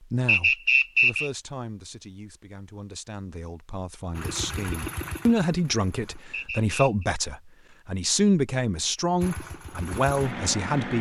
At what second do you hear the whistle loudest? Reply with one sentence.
The volume of the whistle peaks at 1 second.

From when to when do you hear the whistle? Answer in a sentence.
The whistle can be heard from 0.2 to 1.3 s and from 6.3 to 7.0 s.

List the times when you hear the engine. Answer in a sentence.
The engine can be heard from 4.1 to 6.2 s and from 9.2 to 10.9 s.